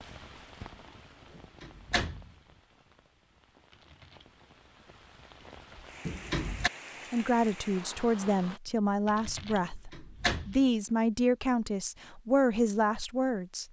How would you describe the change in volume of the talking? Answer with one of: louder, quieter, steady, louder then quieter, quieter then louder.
steady.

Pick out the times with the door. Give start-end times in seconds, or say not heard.
1.4-2.3, 6.0-6.7, 9.7-10.6.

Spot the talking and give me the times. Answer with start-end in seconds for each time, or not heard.
7.1-13.6.